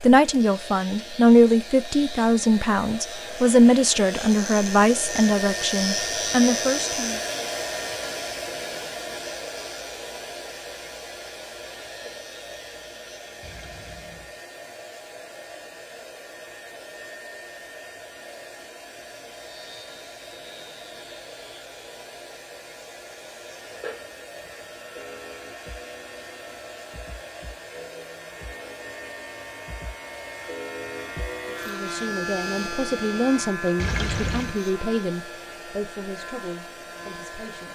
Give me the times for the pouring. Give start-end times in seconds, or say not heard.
13.4-14.3, 33.8-34.6.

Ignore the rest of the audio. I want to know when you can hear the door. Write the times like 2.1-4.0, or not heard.
not heard.